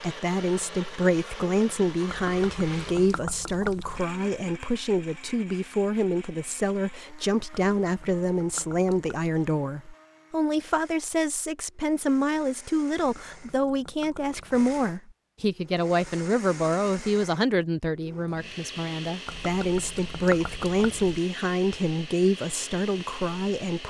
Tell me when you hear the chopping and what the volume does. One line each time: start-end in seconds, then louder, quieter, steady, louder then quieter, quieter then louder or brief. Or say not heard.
not heard.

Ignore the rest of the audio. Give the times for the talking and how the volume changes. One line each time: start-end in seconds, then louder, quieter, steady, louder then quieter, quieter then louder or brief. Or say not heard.
0.0-23.8 steady.